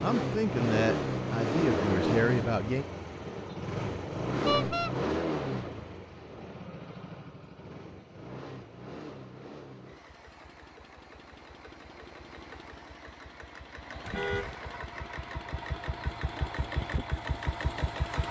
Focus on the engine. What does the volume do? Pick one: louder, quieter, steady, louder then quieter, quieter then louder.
quieter then louder.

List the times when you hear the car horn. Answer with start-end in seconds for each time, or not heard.
4.5-4.9, 14.1-14.6.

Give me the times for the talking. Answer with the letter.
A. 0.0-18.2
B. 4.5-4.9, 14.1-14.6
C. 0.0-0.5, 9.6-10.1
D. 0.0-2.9
D.